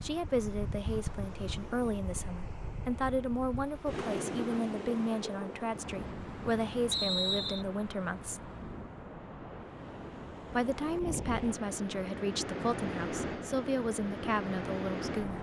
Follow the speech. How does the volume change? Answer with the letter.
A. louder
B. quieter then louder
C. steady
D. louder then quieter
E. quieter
C.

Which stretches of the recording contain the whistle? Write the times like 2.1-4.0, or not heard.
6.9-7.7.